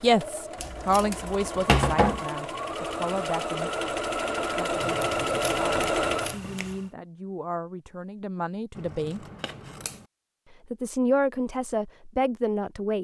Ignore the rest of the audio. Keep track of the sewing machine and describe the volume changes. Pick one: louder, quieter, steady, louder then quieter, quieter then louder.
louder.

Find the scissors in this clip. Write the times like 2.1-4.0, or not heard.
0.6-2.2, 4.8-6.9, 8.8-10.1.